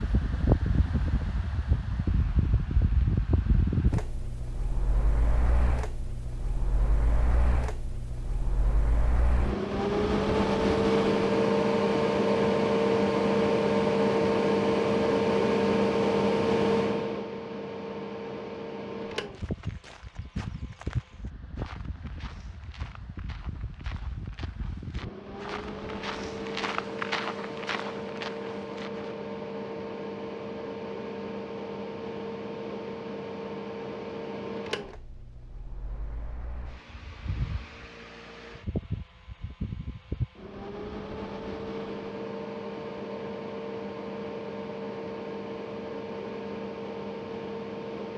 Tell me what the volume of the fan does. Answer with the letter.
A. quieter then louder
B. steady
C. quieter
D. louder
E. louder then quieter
E.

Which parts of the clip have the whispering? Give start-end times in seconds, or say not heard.
not heard.